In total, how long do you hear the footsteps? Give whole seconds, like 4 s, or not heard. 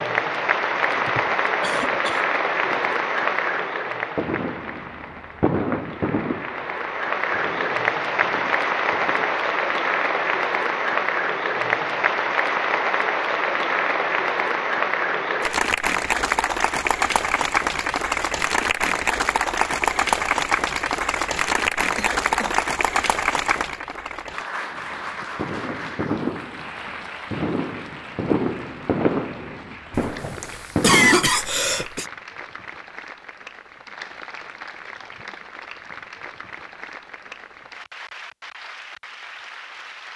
not heard.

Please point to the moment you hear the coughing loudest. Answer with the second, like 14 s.
31 s.